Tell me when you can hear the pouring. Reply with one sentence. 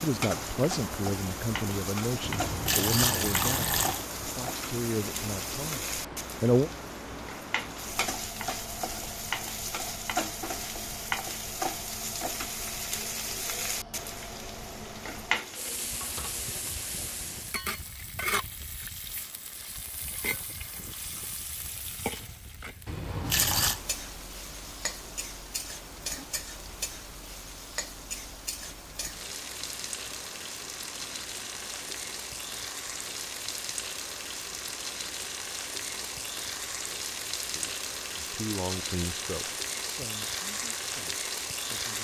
You can hear the pouring from 2.2 to 4.0 s and from 22.9 to 23.8 s.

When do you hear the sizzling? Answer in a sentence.
The sizzling can be heard from 0.0 to 41.9 s.